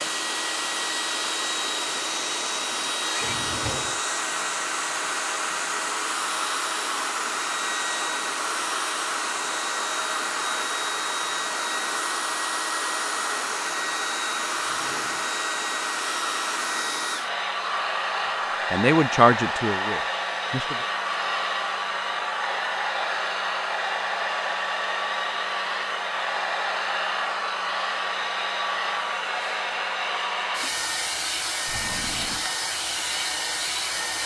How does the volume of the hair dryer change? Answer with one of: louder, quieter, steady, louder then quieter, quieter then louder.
steady.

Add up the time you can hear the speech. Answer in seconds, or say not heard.
2 s.